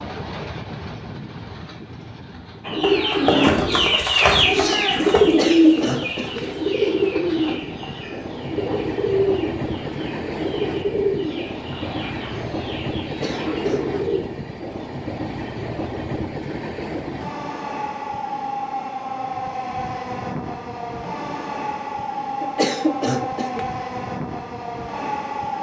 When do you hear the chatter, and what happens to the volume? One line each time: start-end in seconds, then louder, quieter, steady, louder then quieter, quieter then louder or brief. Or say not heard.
not heard.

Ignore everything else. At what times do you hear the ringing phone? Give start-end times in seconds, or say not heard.
not heard.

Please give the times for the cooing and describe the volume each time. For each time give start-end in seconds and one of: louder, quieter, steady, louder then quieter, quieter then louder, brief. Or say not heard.
2.6-14.2 quieter.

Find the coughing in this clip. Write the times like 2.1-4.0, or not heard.
5.2-7.0, 13.0-13.9, 22.4-23.6.